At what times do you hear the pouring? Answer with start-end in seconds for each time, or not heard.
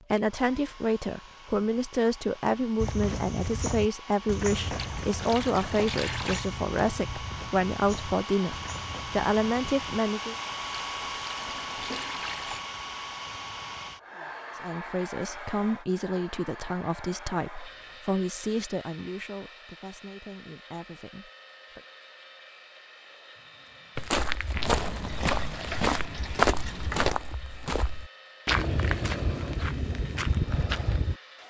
4.8-6.5, 10.8-12.7, 24.5-27.1.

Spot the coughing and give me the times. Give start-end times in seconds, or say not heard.
not heard.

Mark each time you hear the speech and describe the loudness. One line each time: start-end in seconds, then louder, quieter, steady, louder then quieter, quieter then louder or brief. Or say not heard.
0.1-10.3 steady
14.6-21.8 quieter.